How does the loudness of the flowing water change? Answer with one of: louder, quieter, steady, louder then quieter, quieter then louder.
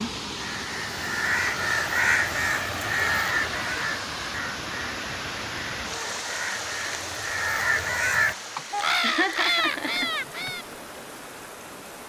quieter.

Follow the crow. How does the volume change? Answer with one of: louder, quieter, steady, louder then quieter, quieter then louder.
quieter then louder.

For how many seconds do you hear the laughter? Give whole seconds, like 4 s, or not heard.
2 s.